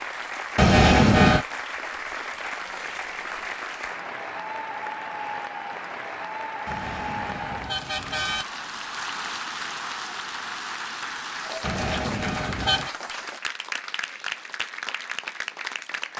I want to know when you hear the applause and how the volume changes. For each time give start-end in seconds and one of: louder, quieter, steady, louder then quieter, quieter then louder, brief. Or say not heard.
0.0-16.1 steady.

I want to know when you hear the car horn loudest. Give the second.
1 s.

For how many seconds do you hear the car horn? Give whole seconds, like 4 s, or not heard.
4 s.